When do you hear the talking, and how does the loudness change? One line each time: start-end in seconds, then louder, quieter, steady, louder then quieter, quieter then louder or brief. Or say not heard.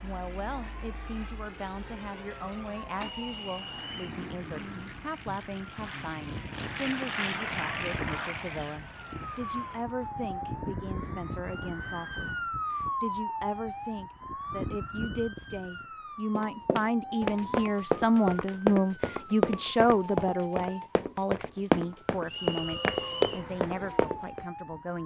0.0-25.0 louder.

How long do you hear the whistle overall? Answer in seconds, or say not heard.
2 s.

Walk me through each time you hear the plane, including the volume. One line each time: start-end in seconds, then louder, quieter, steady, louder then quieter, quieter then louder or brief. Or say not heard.
0.0-9.8 louder.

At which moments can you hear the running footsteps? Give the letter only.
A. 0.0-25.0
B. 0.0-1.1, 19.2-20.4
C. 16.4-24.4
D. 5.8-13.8
C.